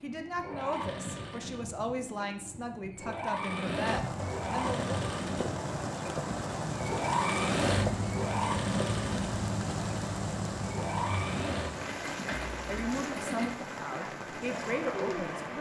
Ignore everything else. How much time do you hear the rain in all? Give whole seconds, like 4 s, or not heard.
12 s.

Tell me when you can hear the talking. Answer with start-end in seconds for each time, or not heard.
0.0-4.9, 12.7-15.5.